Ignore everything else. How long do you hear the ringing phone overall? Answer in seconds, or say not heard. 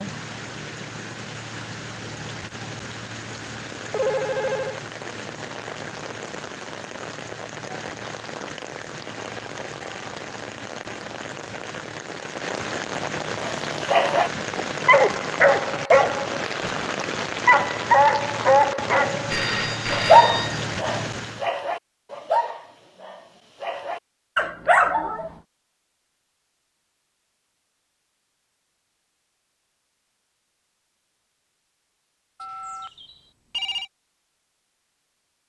4 s.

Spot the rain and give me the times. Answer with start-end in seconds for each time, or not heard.
0.0-21.5.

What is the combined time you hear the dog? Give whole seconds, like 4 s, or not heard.
12 s.